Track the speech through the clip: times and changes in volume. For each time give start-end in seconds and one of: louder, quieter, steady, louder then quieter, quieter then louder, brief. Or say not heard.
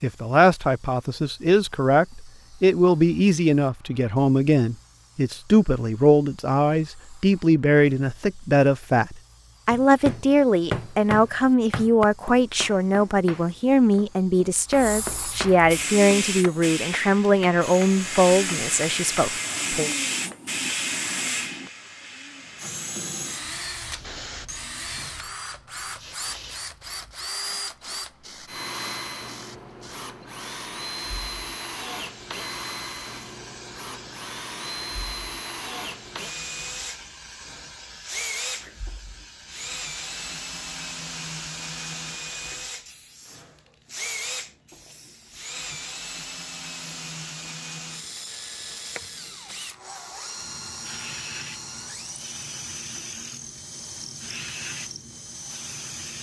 0.0-19.9 steady.